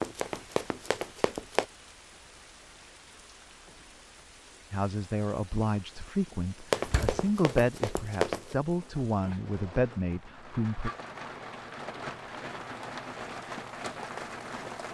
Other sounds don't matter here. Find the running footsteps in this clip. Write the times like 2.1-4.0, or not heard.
0.0-1.6, 6.7-8.6.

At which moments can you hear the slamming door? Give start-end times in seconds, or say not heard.
6.8-7.3.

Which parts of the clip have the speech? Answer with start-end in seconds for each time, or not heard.
4.7-10.9.